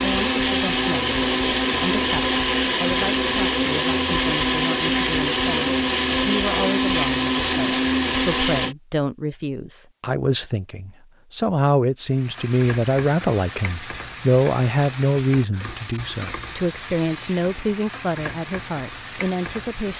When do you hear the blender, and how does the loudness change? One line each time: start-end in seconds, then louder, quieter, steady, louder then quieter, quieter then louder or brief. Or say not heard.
0.0-8.8 steady.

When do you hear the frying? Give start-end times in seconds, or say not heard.
12.1-19.9.